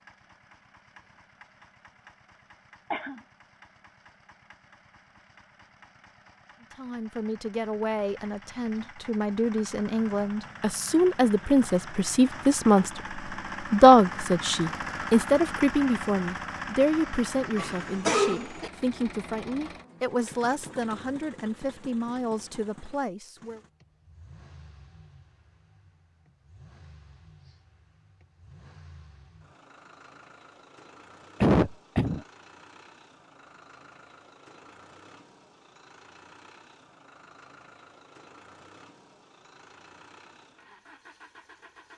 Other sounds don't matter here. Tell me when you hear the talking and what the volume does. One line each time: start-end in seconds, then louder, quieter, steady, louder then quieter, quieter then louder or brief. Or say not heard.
6.8-23.6 louder then quieter.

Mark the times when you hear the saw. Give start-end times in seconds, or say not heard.
not heard.